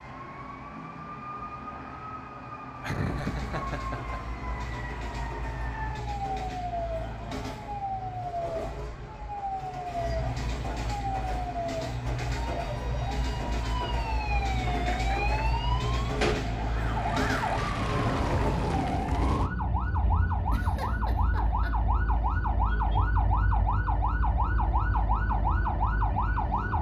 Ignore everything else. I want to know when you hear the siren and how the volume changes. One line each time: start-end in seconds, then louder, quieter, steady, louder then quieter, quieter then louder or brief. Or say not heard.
0.0-26.7 louder.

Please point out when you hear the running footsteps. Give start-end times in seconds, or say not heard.
not heard.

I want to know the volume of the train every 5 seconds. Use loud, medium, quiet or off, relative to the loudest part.
medium, medium, loud, loud, off, off.